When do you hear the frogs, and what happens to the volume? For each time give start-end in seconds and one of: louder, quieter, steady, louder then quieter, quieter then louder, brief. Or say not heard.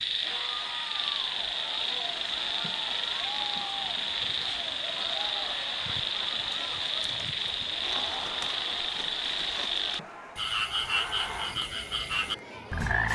0.0-13.1 steady.